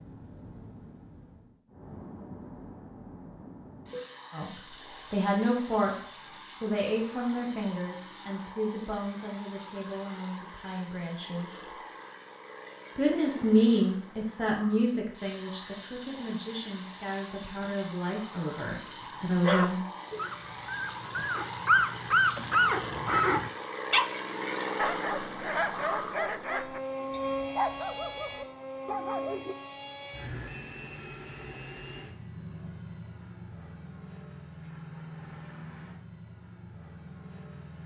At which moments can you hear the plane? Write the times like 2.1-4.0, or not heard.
0.0-37.8.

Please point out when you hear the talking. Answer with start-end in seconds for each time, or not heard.
4.3-11.8, 12.9-19.8.